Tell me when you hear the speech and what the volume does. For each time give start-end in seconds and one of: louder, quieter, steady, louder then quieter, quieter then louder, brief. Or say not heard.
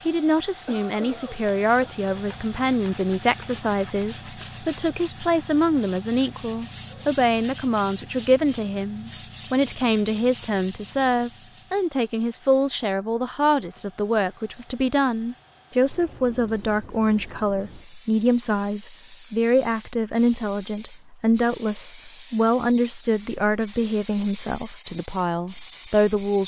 0.1-26.4 steady.